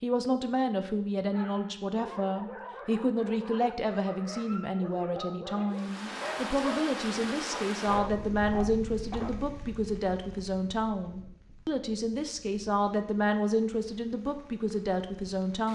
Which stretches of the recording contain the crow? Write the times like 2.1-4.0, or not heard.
not heard.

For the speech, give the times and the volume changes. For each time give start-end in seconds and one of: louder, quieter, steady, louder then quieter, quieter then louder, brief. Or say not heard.
0.0-15.7 steady.